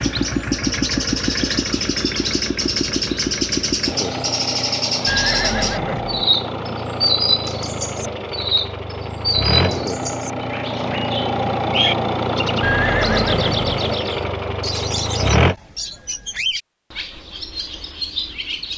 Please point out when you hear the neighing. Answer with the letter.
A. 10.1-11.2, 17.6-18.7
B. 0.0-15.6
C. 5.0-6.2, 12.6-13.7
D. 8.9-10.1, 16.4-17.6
C.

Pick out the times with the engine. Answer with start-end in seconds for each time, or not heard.
0.0-15.6.